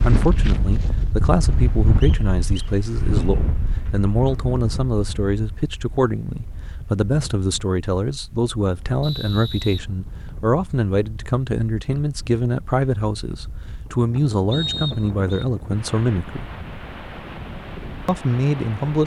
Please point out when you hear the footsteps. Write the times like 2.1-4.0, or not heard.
not heard.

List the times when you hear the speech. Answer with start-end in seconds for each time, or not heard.
0.0-16.5, 18.1-19.0.